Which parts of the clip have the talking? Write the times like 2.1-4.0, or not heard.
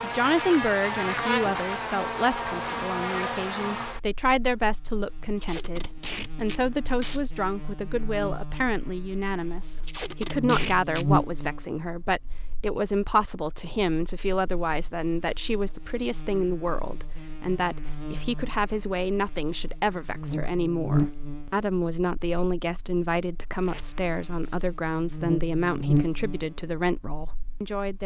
0.0-28.0.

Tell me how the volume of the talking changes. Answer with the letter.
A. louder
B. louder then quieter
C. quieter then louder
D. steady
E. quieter
D.